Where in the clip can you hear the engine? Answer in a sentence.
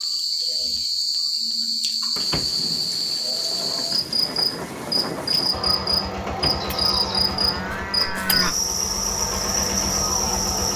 The engine can be heard from 5.5 to 10.7 s.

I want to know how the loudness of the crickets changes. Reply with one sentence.
The loudness of the crickets stays about the same.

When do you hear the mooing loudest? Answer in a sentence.
The loudest moment of the mooing is at 8 seconds.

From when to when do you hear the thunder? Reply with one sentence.
The thunder can be heard from 2.1 to 5.7 s.